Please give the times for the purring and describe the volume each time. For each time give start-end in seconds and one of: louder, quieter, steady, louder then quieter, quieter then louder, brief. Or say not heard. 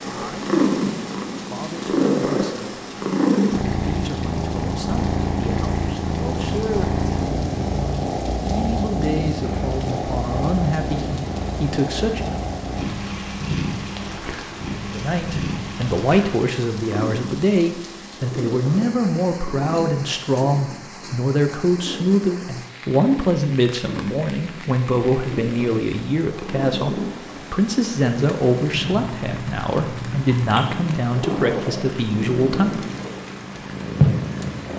0.0-34.7 quieter then louder.